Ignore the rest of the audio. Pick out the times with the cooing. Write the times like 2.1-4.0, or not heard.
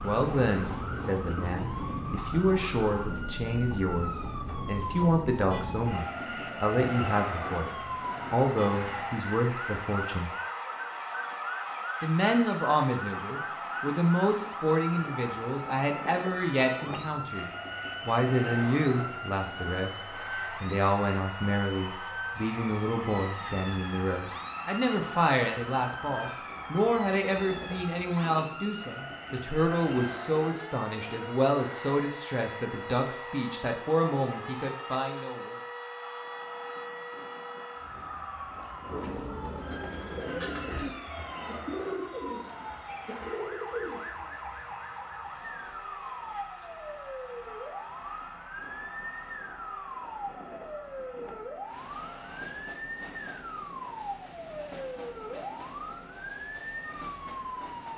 38.9-44.6.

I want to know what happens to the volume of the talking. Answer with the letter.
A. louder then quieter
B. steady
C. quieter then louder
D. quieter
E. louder
B.